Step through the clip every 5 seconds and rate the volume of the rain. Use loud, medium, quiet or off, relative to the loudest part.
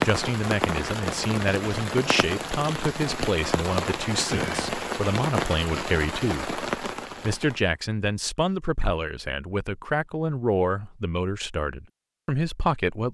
loud, loud, off.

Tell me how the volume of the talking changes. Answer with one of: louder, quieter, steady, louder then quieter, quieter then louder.
steady.